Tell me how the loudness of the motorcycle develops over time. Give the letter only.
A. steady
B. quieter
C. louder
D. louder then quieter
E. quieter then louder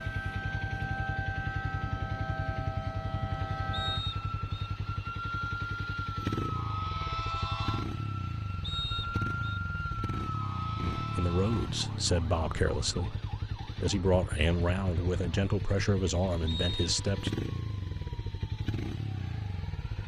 A.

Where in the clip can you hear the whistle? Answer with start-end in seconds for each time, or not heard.
3.7-4.7, 8.6-9.6, 16.4-16.9.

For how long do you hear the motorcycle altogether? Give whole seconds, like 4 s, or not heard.
20 s.